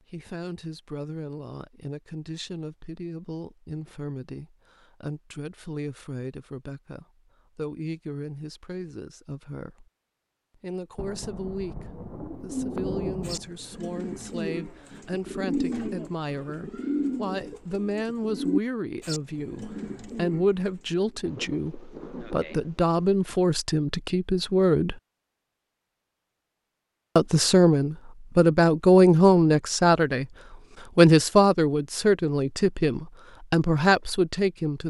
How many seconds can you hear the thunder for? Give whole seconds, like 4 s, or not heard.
4 s.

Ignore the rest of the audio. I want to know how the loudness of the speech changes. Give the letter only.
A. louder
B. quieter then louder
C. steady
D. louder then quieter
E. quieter
A.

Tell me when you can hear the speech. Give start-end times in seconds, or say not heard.
0.1-9.9, 10.6-25.0, 27.1-30.2, 30.9-34.8.